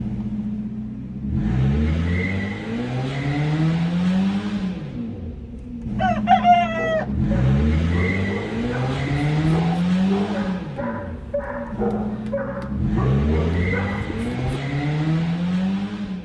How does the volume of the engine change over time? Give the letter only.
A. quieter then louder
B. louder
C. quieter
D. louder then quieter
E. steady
E.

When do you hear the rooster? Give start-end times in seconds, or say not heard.
6.0-7.0.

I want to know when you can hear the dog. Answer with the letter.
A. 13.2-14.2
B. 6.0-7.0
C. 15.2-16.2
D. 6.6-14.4
D.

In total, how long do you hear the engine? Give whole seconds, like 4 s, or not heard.
16 s.